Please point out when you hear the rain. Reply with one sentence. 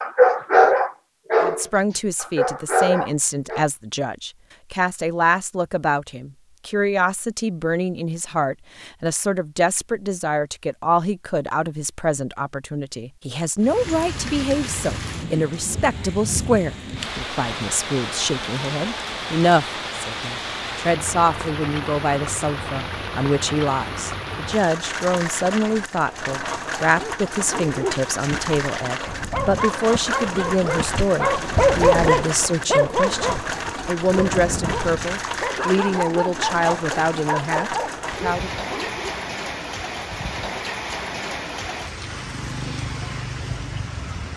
The rain can be heard from 13.6 to 44.3 s.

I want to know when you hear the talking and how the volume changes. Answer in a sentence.
You can hear the talking from 1.4 to 38.6 s, at a steady volume.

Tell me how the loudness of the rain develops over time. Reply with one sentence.
The loudness of the rain stays about the same.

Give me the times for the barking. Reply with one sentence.
The barking can be heard from 0.0 to 3.6 s and from 26.9 to 39.1 s.